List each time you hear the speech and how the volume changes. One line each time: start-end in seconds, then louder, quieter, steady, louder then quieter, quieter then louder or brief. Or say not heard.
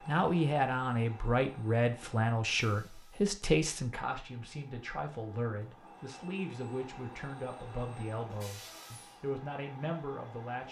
0.1-10.6 quieter.